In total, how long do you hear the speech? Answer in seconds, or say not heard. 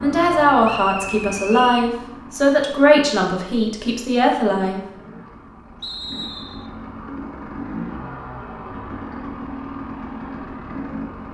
5 s.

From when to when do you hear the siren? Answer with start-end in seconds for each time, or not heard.
not heard.